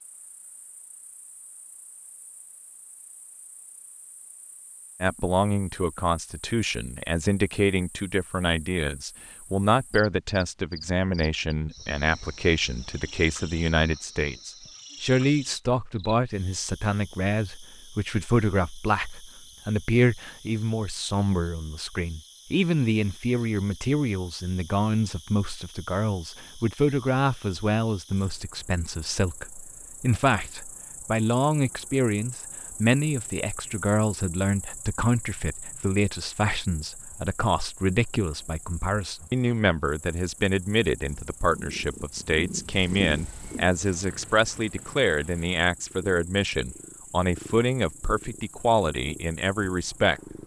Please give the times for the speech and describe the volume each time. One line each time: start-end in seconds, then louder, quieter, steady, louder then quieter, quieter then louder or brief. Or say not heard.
5.0-50.2 steady.